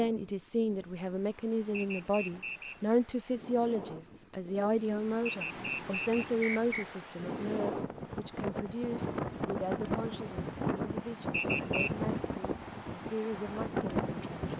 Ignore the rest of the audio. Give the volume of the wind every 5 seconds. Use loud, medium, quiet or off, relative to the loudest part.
quiet, loud, loud.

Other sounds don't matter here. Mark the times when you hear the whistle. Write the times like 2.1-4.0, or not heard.
1.8-2.8, 5.2-6.8, 11.3-11.9.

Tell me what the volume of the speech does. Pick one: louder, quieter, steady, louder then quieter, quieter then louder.
quieter.